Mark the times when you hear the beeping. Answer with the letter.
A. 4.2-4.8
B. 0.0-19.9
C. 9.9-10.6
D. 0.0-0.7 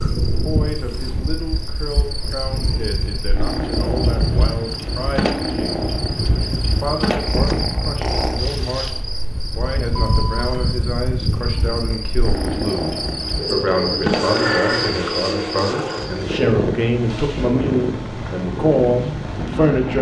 C.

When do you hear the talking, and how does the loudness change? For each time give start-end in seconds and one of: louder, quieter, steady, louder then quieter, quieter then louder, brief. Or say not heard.
0.0-19.9 louder.